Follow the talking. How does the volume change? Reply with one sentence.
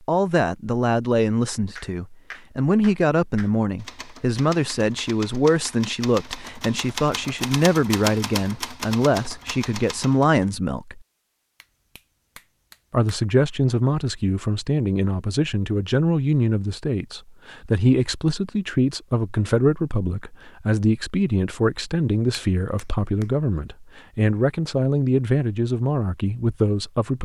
The volume of the talking stays about the same.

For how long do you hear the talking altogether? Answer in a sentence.
You can hear the talking for 25 seconds altogether.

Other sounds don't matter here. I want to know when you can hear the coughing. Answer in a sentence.
The coughing can't be heard in this clip.